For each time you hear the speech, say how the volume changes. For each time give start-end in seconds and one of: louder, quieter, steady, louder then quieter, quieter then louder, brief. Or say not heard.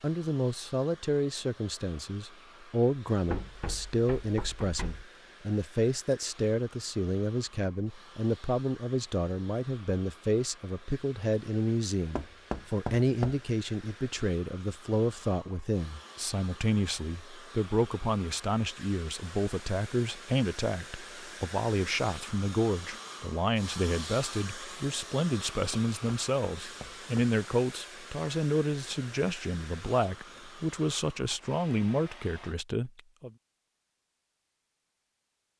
0.0-33.3 steady.